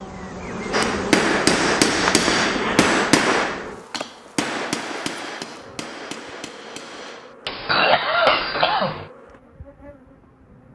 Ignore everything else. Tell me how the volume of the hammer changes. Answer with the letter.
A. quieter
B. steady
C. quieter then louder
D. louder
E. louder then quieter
C.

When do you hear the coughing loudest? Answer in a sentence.
The loudest moment of the coughing is at 8 seconds.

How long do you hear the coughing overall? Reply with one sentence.
You can hear the coughing for 3 seconds altogether.